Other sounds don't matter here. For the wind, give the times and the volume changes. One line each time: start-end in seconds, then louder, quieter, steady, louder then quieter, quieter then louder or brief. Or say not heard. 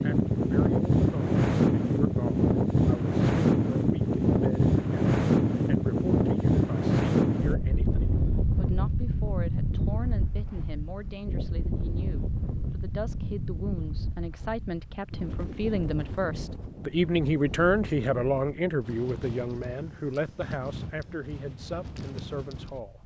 0.0-23.0 quieter.